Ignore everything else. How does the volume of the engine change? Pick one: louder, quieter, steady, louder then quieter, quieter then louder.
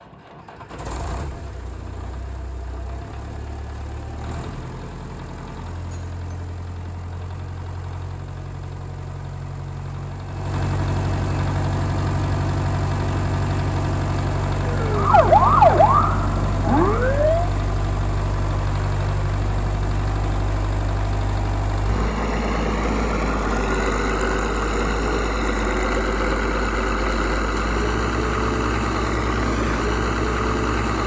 louder.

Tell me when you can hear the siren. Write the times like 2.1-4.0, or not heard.
14.7-17.5.